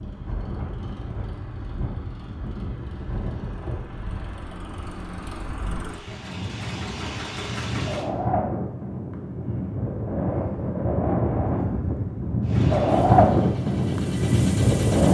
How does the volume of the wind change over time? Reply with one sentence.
The loudness of the wind goes up.